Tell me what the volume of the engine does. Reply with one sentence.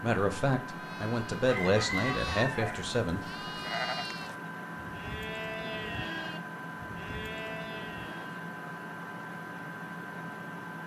The loudness of the engine stays about the same.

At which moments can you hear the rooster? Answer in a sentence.
The rooster can be heard from 1.4 to 2.9 s.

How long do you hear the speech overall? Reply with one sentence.
You can hear the speech for 3 seconds altogether.